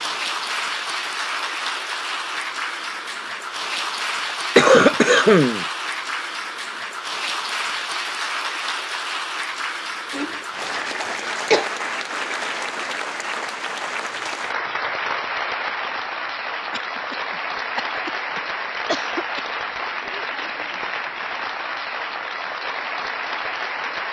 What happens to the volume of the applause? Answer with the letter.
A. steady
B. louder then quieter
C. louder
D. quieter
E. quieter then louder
A.